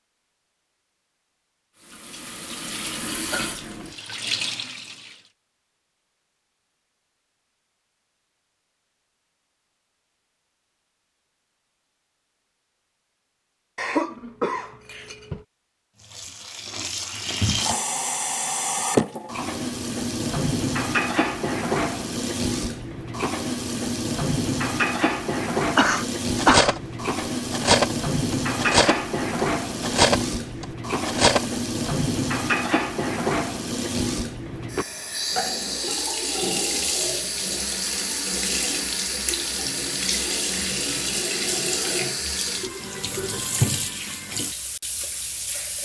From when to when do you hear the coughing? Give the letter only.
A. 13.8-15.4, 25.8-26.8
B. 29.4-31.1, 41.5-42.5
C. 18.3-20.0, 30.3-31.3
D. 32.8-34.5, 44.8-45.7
A.